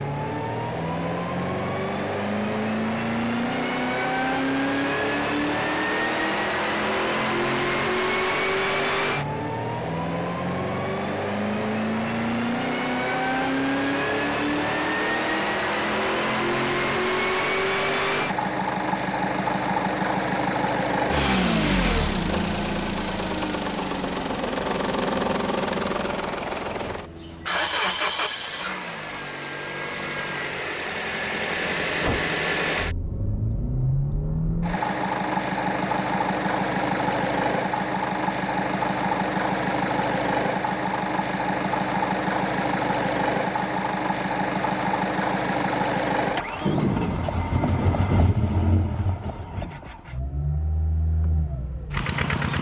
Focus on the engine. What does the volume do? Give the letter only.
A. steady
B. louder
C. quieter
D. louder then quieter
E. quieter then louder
A.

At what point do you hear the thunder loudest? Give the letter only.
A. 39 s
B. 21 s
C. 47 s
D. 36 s
C.